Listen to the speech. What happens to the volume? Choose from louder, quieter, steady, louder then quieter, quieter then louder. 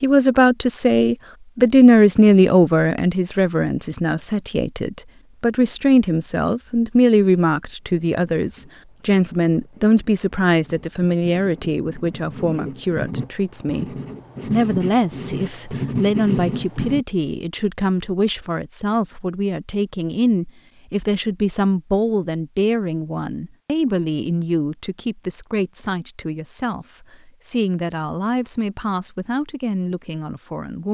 quieter.